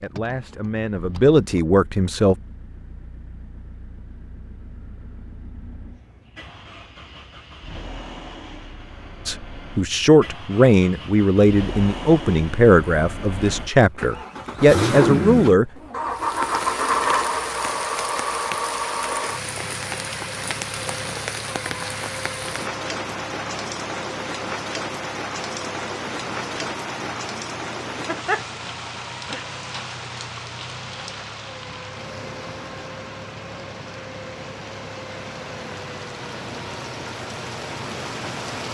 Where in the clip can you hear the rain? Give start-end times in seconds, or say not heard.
16.1-38.6.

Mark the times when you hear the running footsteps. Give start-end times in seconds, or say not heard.
not heard.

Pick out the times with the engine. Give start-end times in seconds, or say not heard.
0.0-38.5.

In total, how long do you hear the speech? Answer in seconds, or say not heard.
9 s.